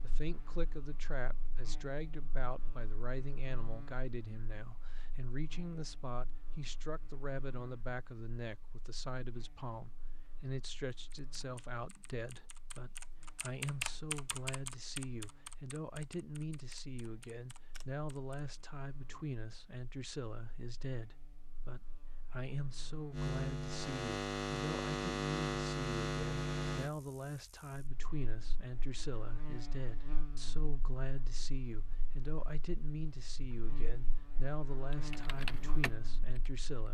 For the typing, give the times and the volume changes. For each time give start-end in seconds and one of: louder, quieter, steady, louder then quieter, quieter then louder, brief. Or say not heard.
10.9-18.6 louder then quieter
34.9-36.8 brief.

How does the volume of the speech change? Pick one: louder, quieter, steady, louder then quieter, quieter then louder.
steady.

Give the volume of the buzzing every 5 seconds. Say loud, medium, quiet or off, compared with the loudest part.
quiet, quiet, quiet, quiet, loud, loud, quiet, medium.